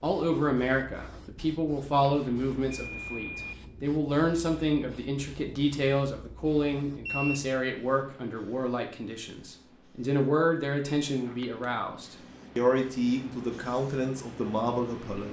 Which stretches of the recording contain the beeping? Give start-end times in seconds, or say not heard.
2.0-3.5, 7.0-7.5, 11.1-11.7.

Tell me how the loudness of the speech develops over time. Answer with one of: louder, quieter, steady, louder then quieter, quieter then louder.
steady.